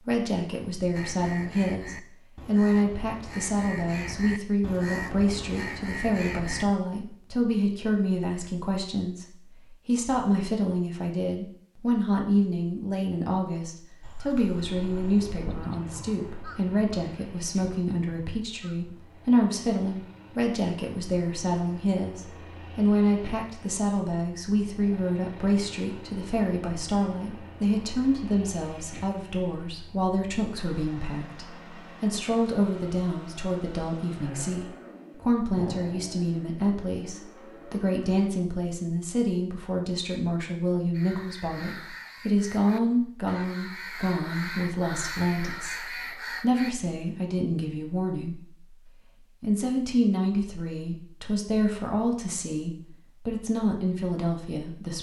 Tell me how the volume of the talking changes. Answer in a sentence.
The loudness of the talking stays about the same.